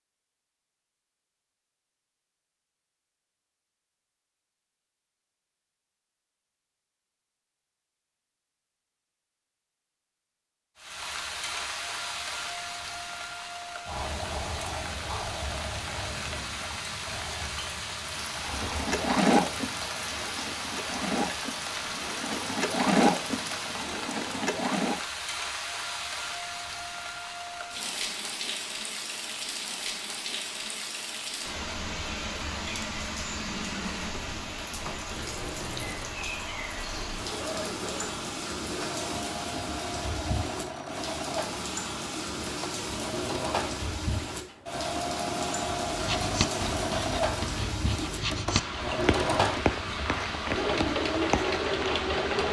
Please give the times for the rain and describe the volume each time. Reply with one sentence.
You can hear the rain from 10.8 to 52.4 s, at a steady volume.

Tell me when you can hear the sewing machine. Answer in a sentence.
The sewing machine can be heard from 18.4 to 25.0 s and from 33.5 to 52.4 s.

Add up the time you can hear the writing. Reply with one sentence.
You can hear the writing for 6 seconds altogether.